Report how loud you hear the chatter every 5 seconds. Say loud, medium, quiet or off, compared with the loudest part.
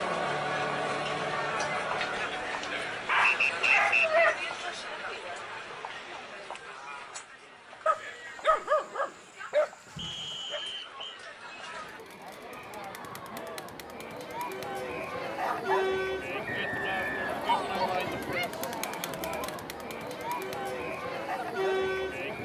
loud, medium, medium, loud, loud.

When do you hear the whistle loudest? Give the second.
4 s.